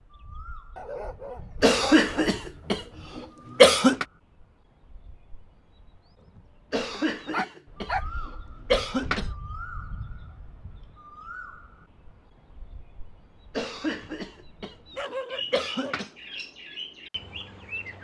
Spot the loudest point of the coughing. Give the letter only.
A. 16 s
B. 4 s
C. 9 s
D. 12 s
B.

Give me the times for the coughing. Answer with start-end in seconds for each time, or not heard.
1.6-4.0, 6.7-9.3, 13.6-16.1.